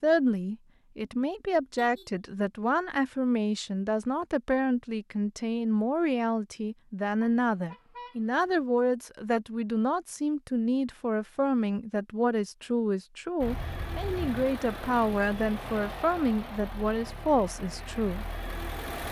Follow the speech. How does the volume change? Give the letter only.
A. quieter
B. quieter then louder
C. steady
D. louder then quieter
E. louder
C.